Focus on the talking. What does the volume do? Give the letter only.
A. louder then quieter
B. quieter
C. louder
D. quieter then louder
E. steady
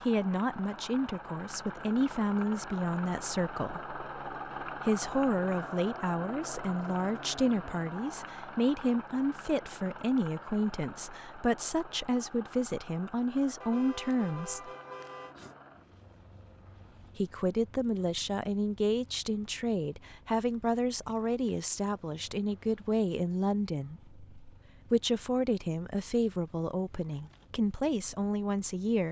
E.